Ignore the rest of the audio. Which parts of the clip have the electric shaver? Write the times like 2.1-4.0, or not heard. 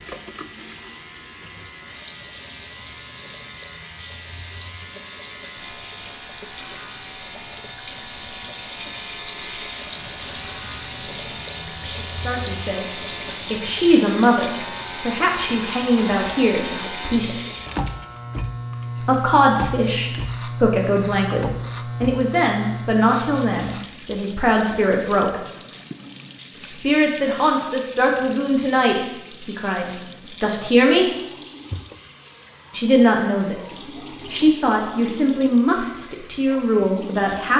0.0-23.9.